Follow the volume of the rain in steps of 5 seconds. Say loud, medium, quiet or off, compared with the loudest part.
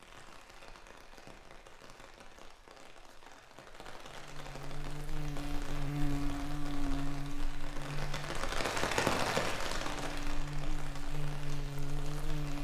quiet, loud, medium.